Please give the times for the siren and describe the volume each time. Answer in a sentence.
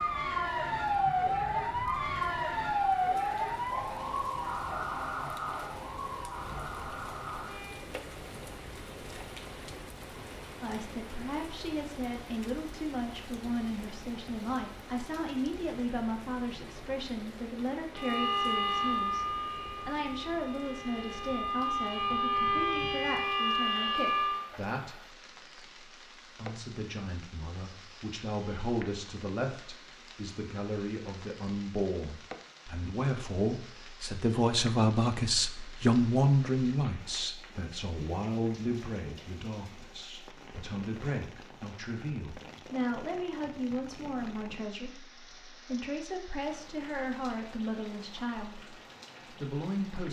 The siren can be heard from 0.0 to 7.8 s, getting quieter; and from 17.9 to 24.4 s, getting quieter then louder.